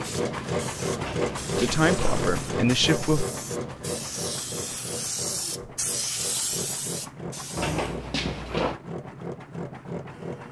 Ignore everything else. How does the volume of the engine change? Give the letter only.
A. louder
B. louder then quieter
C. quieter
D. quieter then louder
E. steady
C.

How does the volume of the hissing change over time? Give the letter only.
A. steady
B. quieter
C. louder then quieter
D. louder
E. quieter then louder
D.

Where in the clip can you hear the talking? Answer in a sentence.
The talking can be heard from 1.6 to 3.2 s.